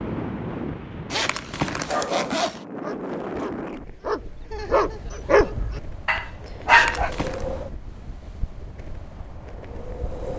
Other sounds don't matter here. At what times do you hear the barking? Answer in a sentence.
You can hear the barking from 1.9 to 7.1 s.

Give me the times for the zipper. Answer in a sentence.
You can hear the zipper from 1.1 to 2.6 s and from 6.7 to 7.5 s.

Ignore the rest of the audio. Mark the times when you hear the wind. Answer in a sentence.
You can hear the wind from 0.0 to 10.3 s.